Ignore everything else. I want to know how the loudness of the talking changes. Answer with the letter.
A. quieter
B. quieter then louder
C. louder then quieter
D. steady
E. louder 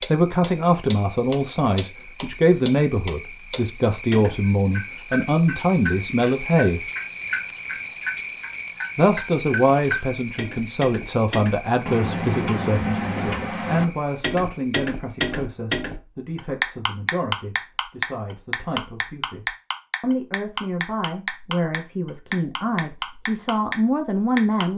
B.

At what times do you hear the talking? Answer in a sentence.
The talking can be heard from 0.1 to 6.8 s and from 8.9 to 24.7 s.